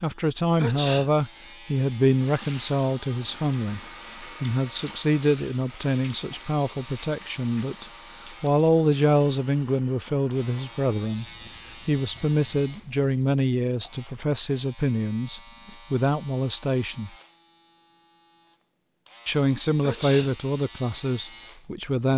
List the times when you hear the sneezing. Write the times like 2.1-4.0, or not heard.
0.6-1.1, 19.8-20.4.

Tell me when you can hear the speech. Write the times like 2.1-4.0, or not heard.
0.0-11.2, 11.8-17.1, 19.2-22.1.